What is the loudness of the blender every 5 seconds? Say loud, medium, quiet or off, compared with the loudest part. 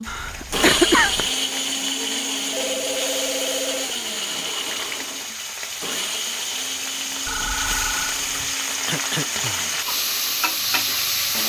loud, medium, quiet.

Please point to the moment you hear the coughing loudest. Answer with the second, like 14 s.
1 s.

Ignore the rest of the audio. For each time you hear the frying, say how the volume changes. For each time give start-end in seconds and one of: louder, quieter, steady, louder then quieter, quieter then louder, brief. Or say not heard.
0.0-11.4 louder.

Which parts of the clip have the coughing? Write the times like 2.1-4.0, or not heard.
0.1-1.3, 8.8-9.8.